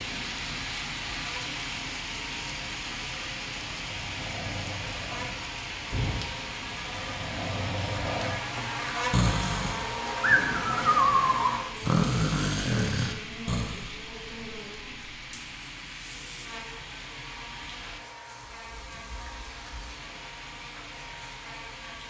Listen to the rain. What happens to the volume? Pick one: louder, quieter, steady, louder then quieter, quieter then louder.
quieter.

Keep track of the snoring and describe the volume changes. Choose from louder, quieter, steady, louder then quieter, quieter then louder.
louder.